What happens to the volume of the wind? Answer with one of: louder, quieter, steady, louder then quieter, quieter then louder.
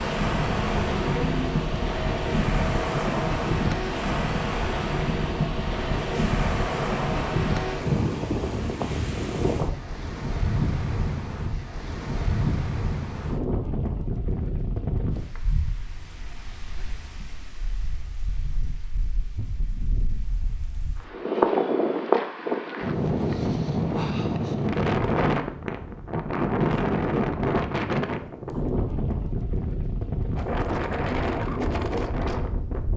quieter then louder.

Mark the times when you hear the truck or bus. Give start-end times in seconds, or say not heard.
0.0-8.1.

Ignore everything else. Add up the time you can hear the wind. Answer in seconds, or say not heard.
33 s.